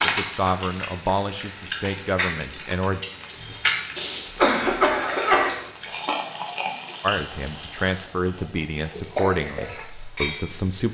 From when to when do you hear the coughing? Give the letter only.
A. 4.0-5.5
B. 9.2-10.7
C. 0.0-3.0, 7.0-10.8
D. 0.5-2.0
A.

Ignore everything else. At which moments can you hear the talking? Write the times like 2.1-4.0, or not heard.
0.0-3.0, 7.0-10.8.